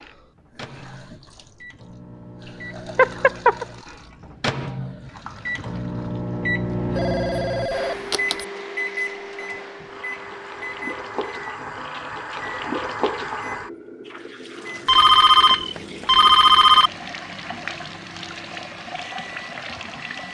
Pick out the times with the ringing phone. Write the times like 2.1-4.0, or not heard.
3.0-3.6, 7.0-8.4, 14.8-16.9.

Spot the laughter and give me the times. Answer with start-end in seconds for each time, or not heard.
not heard.